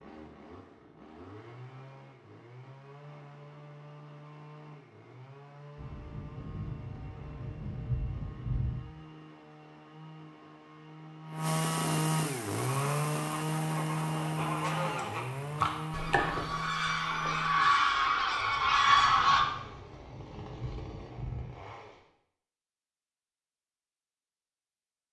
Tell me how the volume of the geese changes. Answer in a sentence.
The volume of the geese goes up.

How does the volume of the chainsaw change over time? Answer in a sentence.
The volume of the chainsaw goes up, then down.